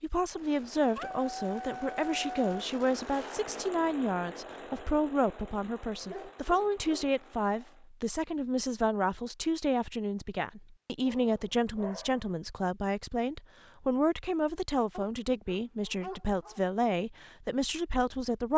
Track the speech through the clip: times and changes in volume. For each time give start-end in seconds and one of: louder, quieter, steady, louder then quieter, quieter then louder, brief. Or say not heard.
0.0-18.5 steady.